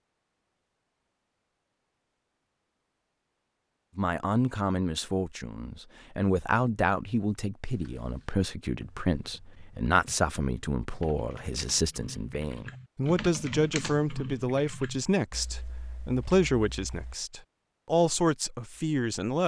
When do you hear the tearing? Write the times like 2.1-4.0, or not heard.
not heard.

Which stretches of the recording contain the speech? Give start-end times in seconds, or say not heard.
4.0-19.4.